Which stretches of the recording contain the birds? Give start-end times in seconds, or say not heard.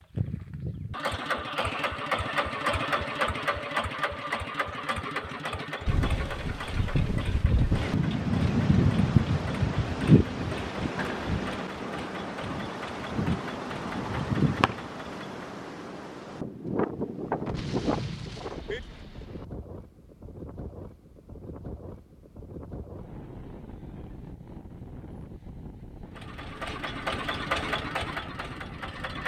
not heard.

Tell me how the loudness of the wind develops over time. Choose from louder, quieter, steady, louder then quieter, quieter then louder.
quieter.